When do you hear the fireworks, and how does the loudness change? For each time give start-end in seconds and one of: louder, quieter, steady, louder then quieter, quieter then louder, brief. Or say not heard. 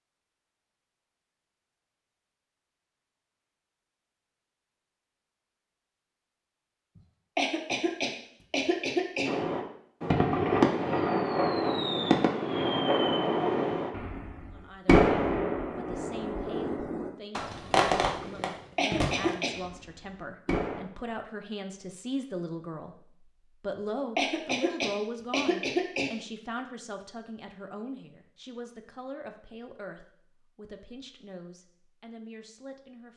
9.2-20.8 quieter.